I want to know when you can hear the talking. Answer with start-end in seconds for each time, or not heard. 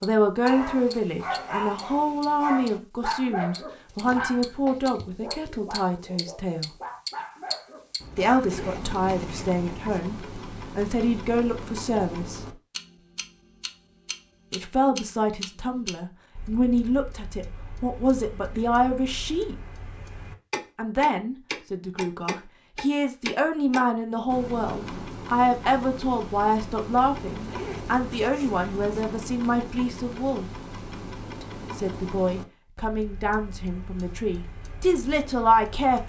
0.0-6.7, 8.2-12.6, 14.5-19.6, 20.8-30.4, 31.4-36.0.